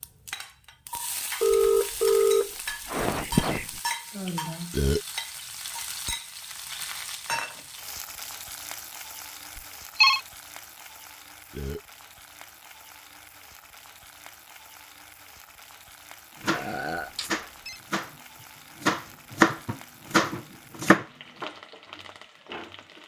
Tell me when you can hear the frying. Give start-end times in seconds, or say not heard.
0.0-23.0.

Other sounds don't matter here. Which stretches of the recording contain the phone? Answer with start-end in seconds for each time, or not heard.
1.4-3.8, 9.6-10.2, 16.4-17.8.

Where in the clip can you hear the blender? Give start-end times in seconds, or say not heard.
not heard.